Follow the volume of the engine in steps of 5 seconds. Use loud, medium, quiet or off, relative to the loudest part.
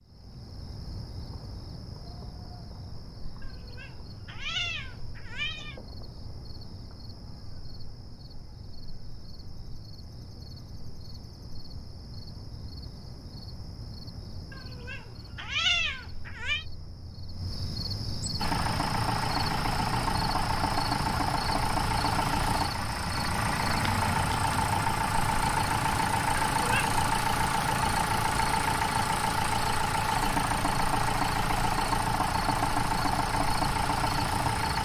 off, off, off, loud, loud, loud, loud.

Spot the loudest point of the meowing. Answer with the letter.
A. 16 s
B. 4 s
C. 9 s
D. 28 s
A.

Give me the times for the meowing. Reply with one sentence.
The meowing can be heard from 3.4 to 5.8 s, from 14.5 to 16.6 s and from 26.6 to 27.0 s.